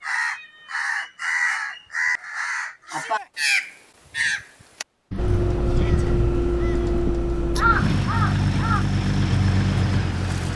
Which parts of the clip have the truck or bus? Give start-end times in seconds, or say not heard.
5.2-10.5.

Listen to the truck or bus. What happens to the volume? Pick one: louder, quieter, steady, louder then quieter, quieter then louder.
steady.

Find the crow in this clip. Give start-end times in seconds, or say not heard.
0.0-8.8.